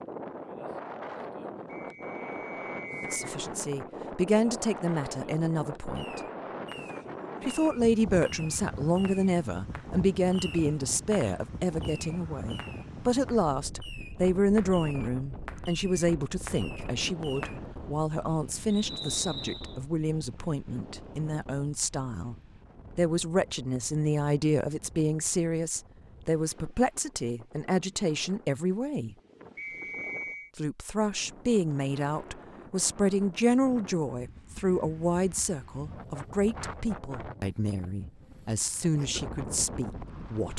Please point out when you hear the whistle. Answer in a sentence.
You can hear the whistle from 1.8 to 3.1 s, from 18.7 to 19.8 s and from 29.6 to 30.5 s.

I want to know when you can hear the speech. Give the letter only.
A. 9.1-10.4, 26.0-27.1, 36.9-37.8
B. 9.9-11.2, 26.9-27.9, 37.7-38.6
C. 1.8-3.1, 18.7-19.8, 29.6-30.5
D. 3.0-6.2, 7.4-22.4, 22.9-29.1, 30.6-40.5
D.